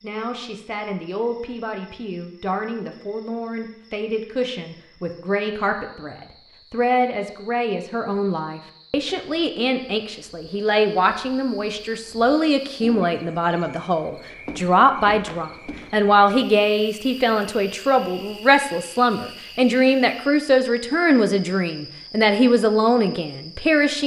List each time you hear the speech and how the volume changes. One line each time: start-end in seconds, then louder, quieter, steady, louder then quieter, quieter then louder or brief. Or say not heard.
0.0-24.0 louder.